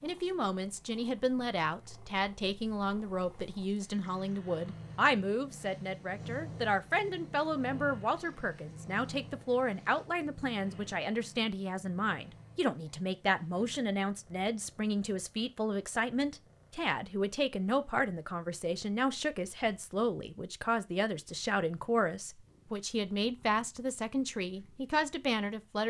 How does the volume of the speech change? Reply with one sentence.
The volume of the speech stays about the same.